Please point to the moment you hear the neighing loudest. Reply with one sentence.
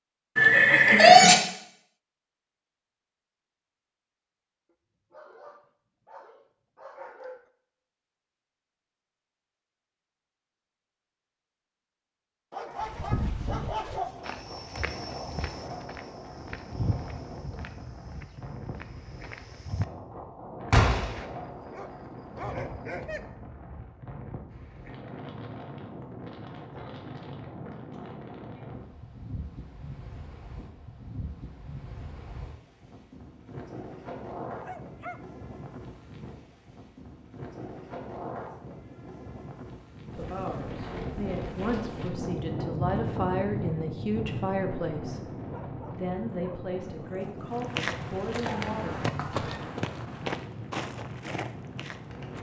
The volume of the neighing peaks at 1 second.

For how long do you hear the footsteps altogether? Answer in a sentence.
The footsteps can be heard for 12 seconds in total.